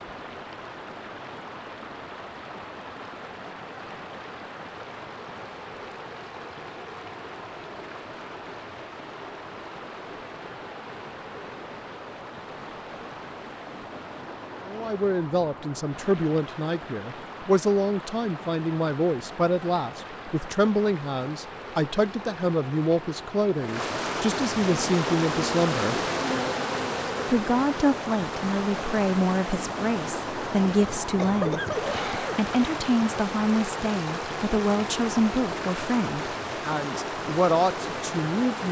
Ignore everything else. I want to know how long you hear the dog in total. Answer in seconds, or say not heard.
not heard.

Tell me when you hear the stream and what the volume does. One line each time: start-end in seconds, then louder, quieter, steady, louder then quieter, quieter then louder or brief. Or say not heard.
0.0-38.6 louder.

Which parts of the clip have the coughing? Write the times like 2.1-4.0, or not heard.
31.1-32.4.